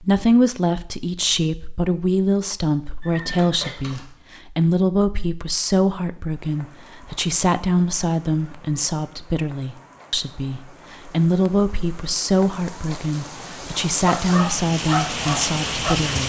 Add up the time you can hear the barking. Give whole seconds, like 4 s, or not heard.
2 s.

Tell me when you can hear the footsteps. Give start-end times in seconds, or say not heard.
not heard.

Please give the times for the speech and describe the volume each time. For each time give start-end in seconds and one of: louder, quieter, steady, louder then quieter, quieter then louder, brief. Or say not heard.
0.0-16.2 steady.